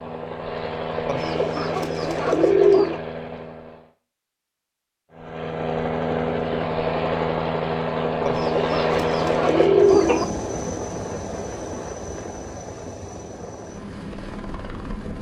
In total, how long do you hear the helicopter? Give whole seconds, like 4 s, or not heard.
14 s.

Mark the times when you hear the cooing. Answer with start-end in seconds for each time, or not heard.
1.1-3.0, 8.2-10.2.